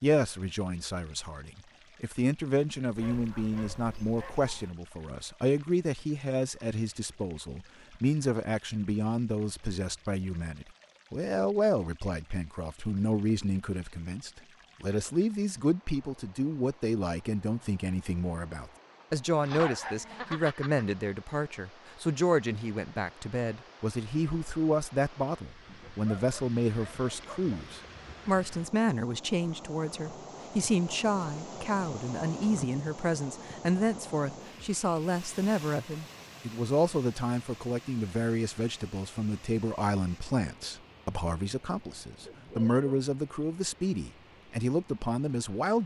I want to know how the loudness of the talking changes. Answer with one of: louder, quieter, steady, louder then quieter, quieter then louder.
steady.